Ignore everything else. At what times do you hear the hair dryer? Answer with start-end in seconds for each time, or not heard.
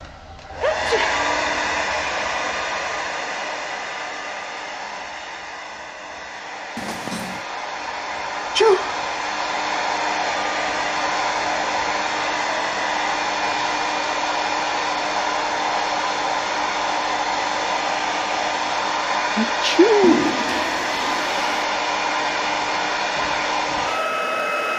0.0-24.7.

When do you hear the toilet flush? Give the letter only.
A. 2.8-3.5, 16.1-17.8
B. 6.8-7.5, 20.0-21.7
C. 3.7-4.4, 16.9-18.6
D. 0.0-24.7
B.